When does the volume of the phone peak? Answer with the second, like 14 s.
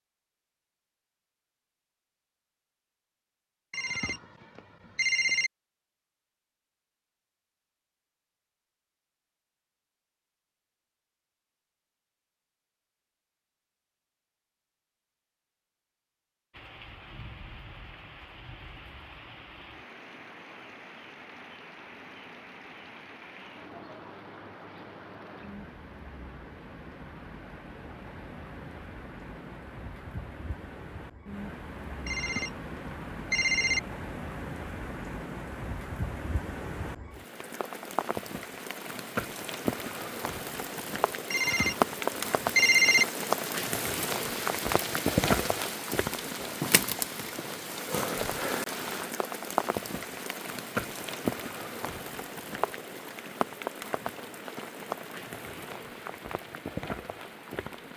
43 s.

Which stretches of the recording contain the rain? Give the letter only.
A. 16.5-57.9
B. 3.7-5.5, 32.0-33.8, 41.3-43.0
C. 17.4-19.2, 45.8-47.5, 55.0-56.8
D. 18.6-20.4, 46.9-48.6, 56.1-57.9
A.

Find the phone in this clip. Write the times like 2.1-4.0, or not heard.
3.7-5.5, 32.0-33.8, 41.3-43.0.